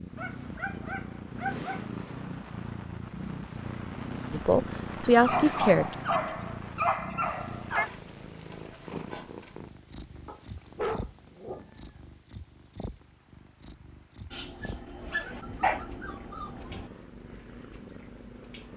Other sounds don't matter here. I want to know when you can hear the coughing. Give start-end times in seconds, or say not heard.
not heard.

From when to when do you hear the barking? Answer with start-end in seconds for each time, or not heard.
0.1-1.9, 5.2-7.9, 10.2-11.8, 14.3-16.9.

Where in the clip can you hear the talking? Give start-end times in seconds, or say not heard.
4.3-6.0.